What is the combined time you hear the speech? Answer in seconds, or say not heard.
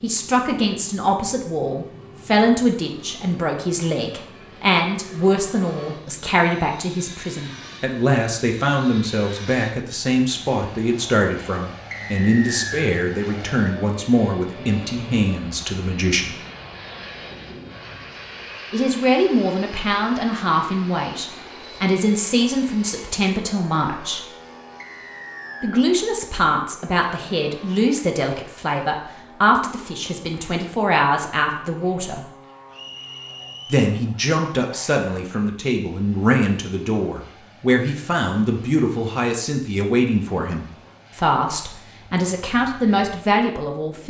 39 s.